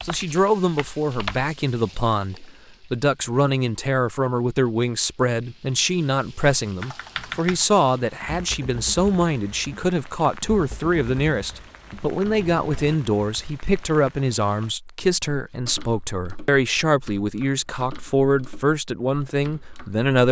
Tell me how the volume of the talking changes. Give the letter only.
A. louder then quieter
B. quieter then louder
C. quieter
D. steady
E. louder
D.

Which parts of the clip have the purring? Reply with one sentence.
You can't hear the purring here.